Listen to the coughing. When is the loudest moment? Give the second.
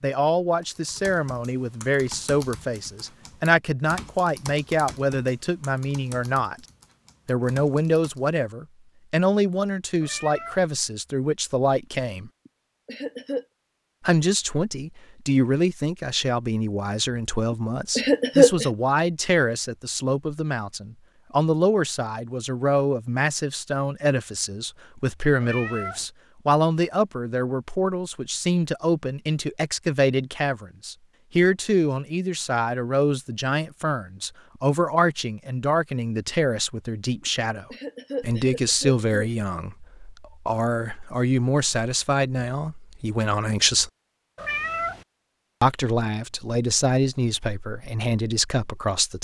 18 s.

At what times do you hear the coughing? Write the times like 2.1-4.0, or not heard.
12.4-13.4, 17.9-18.6, 37.7-39.0.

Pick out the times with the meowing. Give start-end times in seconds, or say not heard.
10.0-10.7, 25.4-26.1, 44.4-45.0.